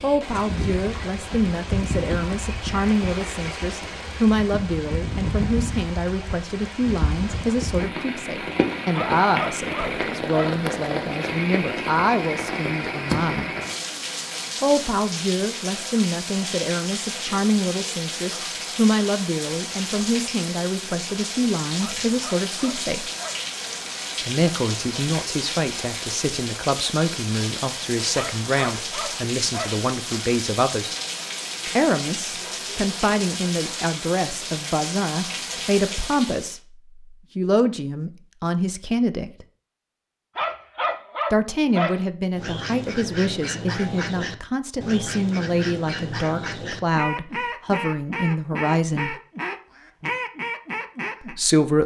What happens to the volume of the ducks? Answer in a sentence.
The volume of the ducks stays about the same.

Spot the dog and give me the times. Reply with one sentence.
You can hear the dog from 8.9 to 10.6 s, from 21.8 to 23.4 s, from 28.1 to 29.8 s and from 40.4 to 42.0 s.